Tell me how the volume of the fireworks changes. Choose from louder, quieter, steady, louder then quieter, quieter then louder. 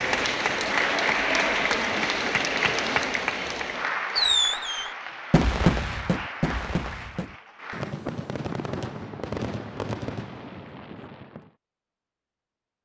quieter.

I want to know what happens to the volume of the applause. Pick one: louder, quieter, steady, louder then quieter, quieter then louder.
quieter.